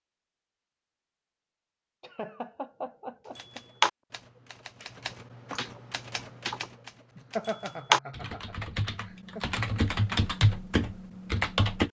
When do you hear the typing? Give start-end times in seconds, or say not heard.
3.4-11.8.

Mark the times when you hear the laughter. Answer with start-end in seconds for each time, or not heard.
2.0-3.6, 7.2-9.4.